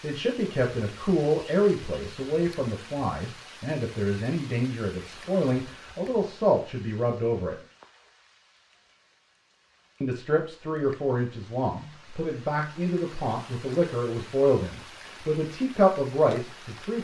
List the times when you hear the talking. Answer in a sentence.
You can hear the talking from 0.0 to 7.5 s and from 10.0 to 16.9 s.